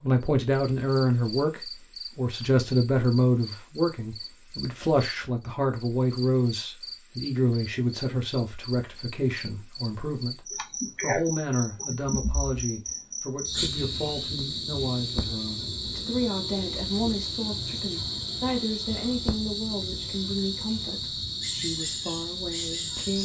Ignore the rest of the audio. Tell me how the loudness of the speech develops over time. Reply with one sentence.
The loudness of the speech goes down.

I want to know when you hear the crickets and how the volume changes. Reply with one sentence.
You can hear the crickets from 0.0 to 23.2 s, getting louder.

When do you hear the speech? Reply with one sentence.
You can hear the speech from 0.0 to 23.2 s.